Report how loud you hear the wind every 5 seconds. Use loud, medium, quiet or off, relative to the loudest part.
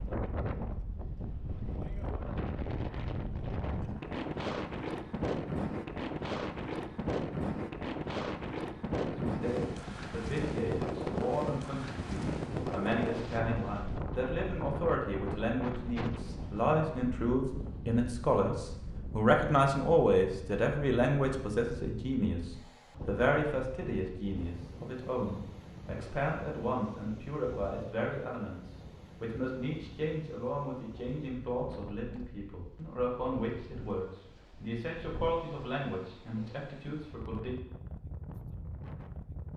loud, loud, loud, medium, quiet, quiet, quiet, quiet.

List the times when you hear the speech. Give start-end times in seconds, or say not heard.
9.1-37.5.